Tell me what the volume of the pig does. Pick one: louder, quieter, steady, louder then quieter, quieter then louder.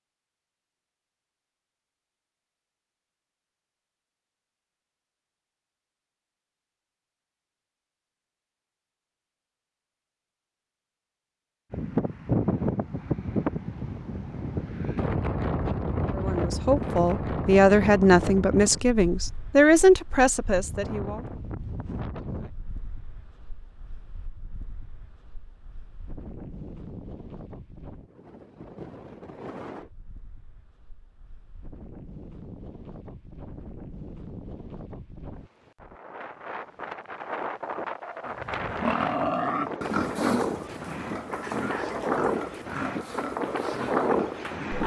quieter.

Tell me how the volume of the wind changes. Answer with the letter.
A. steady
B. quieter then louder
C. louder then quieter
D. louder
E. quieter
B.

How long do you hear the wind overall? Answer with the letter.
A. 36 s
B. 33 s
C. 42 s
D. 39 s
B.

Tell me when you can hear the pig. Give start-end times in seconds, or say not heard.
38.2-44.8.